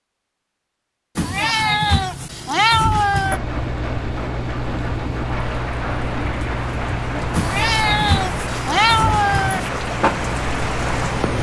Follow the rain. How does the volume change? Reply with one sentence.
The loudness of the rain goes up.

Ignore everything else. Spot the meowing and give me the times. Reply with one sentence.
The meowing can be heard from 1.1 to 3.4 s and from 7.3 to 9.7 s.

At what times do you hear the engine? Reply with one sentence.
The engine can be heard from 3.2 to 11.3 s.